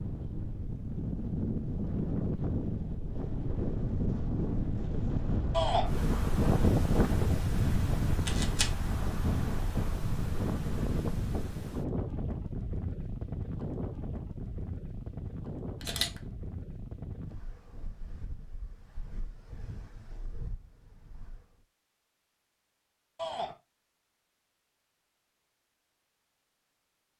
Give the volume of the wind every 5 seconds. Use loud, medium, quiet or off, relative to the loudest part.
loud, loud, medium, quiet, quiet, off.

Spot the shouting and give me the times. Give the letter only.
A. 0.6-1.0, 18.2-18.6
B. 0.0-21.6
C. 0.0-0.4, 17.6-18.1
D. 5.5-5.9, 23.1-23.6
D.